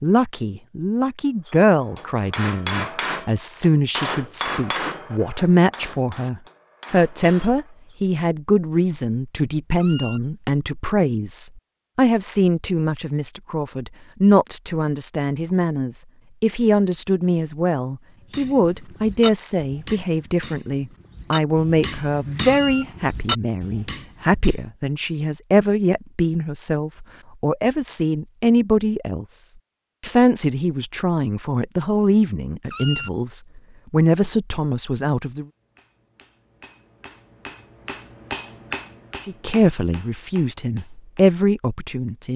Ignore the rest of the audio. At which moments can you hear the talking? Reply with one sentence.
You can hear the talking from 0.0 to 35.5 s and from 39.2 to 42.3 s.